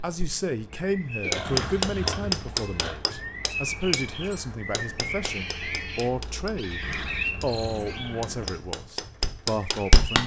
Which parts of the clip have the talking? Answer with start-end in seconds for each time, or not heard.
0.0-10.2.